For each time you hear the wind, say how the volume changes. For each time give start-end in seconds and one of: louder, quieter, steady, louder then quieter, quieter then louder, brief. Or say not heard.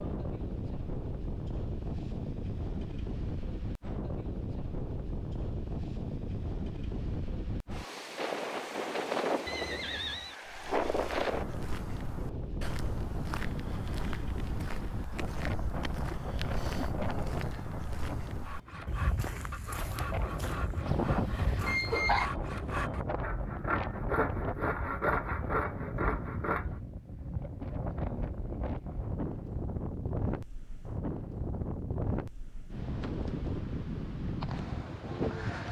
0.0-35.6 steady.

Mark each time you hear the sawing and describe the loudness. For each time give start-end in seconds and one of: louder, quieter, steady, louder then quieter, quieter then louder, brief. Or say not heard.
18.4-26.8 louder.